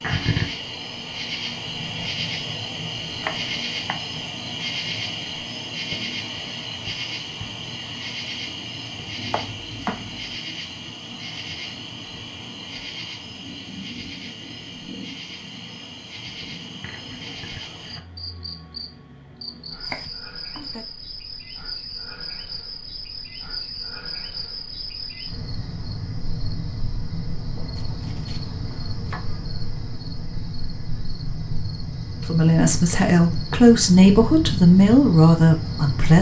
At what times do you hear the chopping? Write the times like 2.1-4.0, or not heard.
3.2-4.0, 9.3-10.2, 19.8-20.9, 27.8-29.4.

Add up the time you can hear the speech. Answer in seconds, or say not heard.
4 s.